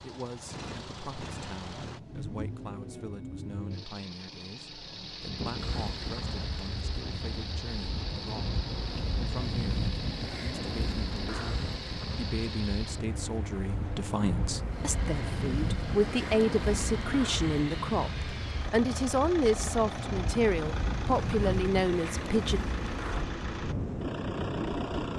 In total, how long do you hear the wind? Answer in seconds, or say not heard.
20 s.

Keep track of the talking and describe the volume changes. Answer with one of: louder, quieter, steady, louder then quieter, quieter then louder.
louder.